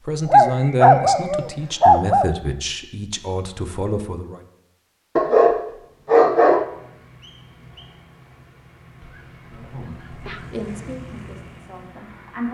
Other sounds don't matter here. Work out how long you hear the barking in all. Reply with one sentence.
The barking can be heard for 5 seconds in total.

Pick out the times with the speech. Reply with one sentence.
You can hear the speech from 0.1 to 4.4 s and from 9.5 to 12.4 s.